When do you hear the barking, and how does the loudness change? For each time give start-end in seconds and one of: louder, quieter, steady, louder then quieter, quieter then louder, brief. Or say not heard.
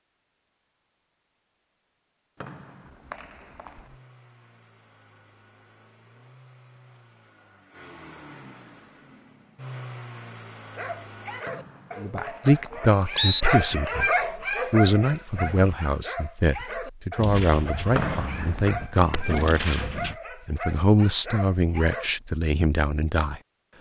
10.8-22.1 louder then quieter.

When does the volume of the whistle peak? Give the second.
13 s.